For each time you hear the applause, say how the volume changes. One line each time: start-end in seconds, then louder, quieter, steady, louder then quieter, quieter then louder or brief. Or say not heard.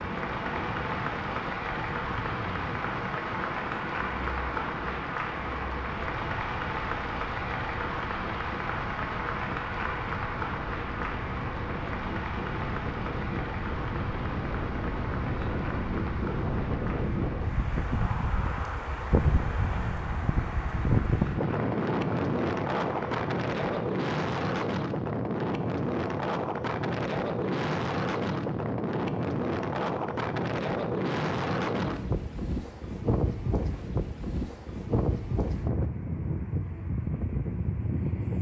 0.0-23.8 quieter.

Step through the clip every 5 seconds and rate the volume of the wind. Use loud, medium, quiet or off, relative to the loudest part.
medium, medium, medium, loud, loud, loud, loud, loud.